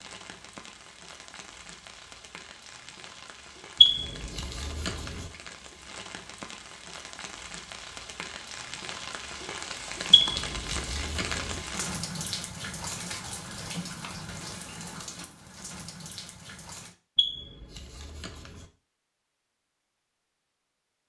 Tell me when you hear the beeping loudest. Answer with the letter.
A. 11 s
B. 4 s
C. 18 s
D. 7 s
B.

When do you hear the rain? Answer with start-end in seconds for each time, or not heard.
0.0-16.9.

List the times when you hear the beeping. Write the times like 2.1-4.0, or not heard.
3.8-5.2, 10.1-11.6, 17.1-18.6.